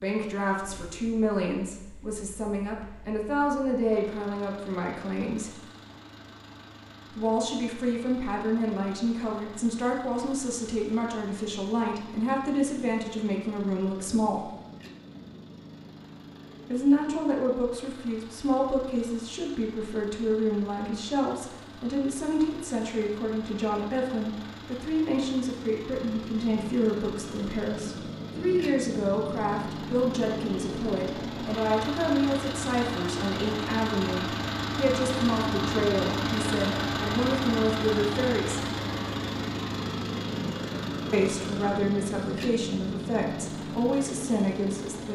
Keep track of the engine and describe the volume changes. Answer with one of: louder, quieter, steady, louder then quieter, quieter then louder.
louder.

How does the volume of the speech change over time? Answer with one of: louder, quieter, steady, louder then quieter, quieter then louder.
steady.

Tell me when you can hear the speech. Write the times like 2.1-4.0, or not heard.
0.0-5.6, 7.1-14.5, 16.7-38.7, 41.1-45.1.